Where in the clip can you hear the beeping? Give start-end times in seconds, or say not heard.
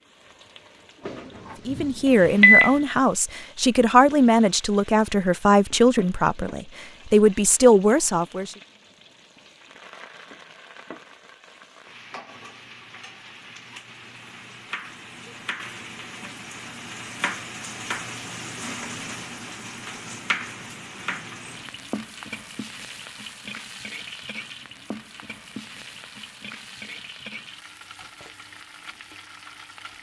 1.1-2.8.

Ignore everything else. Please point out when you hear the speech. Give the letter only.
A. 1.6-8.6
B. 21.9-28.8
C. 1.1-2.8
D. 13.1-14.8
A.